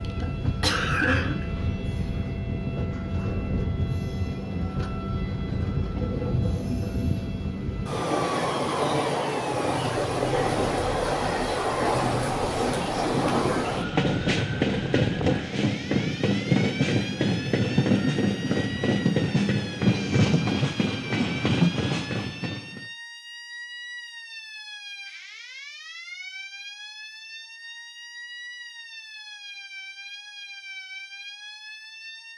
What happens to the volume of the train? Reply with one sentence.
The loudness of the train goes up.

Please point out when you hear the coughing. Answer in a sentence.
The coughing can be heard from 0.2 to 1.4 s.